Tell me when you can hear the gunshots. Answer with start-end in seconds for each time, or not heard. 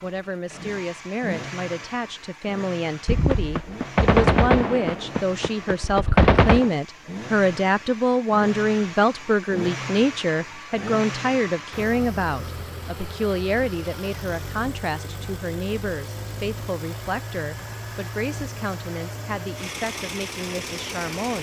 3.0-6.7.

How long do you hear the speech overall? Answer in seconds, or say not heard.
21 s.